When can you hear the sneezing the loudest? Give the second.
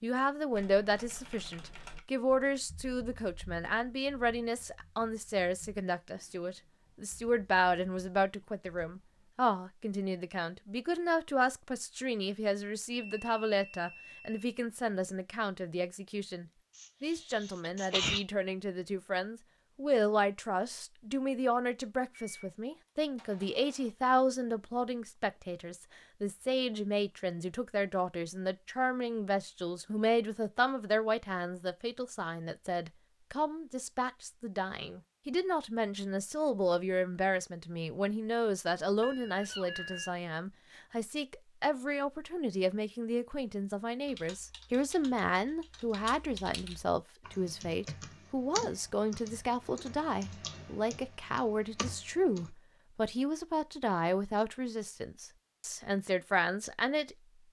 18 s.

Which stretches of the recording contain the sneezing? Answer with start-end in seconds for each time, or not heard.
16.8-18.2, 39.4-40.0.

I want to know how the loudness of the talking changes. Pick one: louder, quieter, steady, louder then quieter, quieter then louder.
steady.